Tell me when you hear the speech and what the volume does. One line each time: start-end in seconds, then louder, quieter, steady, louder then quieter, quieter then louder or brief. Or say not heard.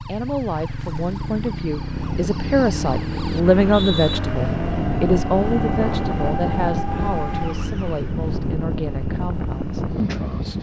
0.1-10.5 louder then quieter.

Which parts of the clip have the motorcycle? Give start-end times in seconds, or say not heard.
0.0-10.5.